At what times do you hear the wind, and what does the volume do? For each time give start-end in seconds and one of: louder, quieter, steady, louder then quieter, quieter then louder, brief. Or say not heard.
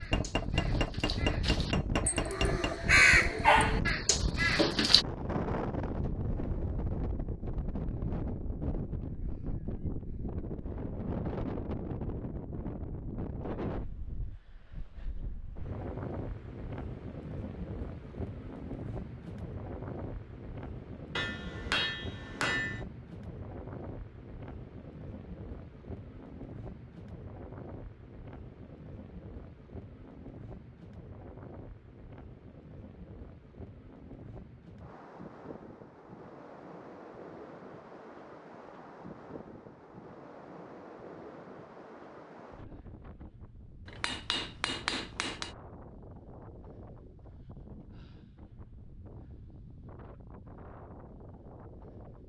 0.0-52.2 quieter.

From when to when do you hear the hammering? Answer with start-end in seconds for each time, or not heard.
0.1-2.8, 21.1-22.9, 43.9-45.5.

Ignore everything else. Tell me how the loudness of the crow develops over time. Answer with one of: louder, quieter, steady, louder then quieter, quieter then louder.
louder then quieter.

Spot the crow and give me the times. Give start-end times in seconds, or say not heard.
0.0-5.0.